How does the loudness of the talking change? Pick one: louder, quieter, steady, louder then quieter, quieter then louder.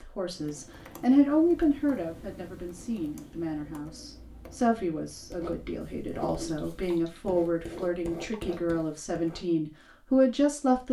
quieter then louder.